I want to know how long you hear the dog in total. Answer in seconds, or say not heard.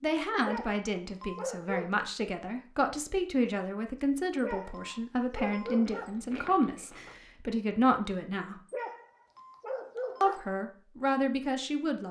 5 s.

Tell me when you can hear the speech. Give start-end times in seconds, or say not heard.
0.0-8.6, 10.2-12.0.